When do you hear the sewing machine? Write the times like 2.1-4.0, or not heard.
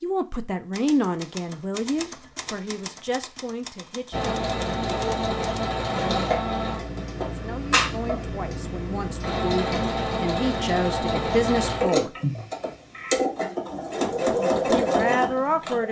4.1-15.8.